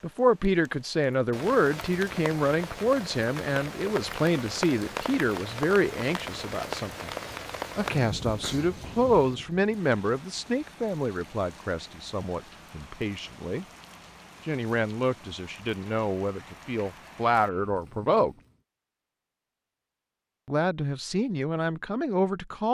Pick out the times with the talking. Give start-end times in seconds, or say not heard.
0.0-7.1, 7.8-13.7, 14.4-18.4, 20.4-22.6.